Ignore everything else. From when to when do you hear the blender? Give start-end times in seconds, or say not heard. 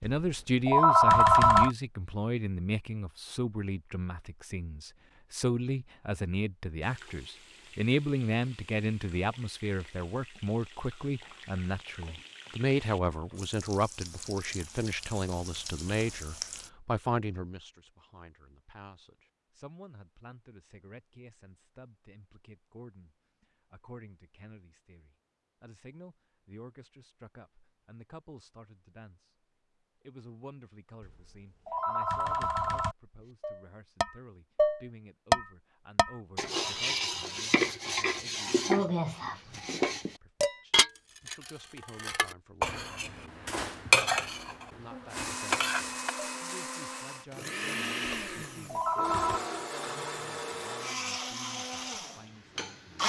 45.1-53.0.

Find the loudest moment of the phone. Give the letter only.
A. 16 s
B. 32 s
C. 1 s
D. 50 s
C.